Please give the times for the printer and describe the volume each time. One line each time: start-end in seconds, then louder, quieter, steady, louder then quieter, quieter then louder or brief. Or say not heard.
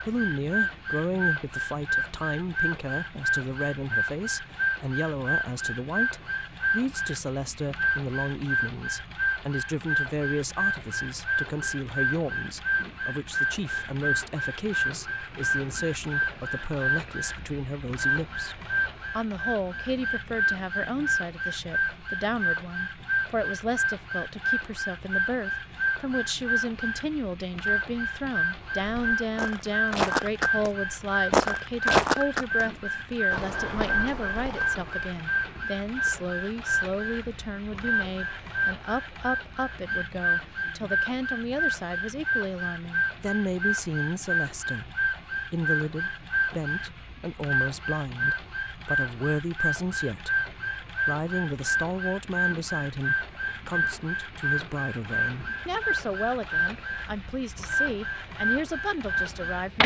0.0-59.8 steady.